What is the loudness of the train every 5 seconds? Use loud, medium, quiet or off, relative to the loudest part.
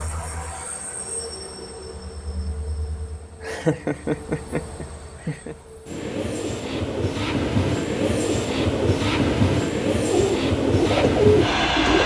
quiet, loud, loud.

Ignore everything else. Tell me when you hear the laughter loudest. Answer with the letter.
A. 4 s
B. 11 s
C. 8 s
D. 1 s
A.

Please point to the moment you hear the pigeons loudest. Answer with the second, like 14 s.
11 s.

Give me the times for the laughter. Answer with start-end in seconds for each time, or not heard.
3.4-5.5.